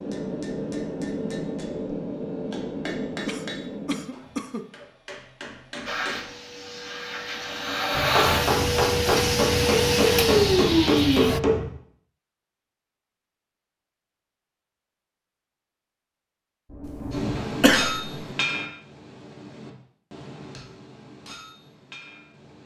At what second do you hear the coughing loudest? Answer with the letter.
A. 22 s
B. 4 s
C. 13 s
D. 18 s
D.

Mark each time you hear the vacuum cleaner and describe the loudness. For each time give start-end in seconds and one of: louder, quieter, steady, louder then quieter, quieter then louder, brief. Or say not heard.
5.8-11.4 louder.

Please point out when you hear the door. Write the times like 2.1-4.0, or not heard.
16.6-17.4.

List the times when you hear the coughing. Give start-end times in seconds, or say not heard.
3.2-4.7, 17.6-18.1.